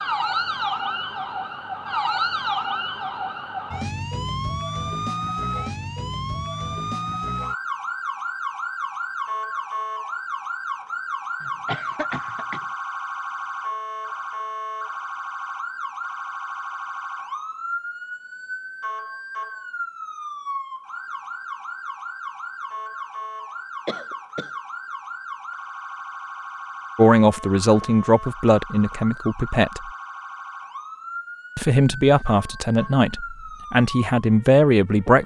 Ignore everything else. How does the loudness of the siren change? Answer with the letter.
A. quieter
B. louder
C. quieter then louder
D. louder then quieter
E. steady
A.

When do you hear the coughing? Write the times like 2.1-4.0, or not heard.
11.4-12.7, 23.9-24.5.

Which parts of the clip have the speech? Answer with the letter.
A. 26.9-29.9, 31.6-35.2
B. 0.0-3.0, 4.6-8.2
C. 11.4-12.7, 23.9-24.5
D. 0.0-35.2
A.